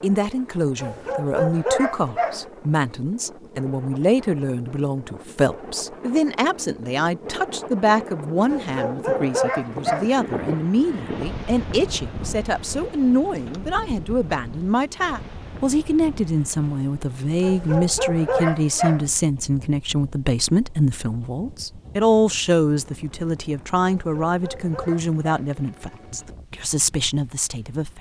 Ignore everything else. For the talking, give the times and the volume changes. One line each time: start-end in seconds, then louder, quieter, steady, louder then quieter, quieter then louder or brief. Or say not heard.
0.0-27.9 steady.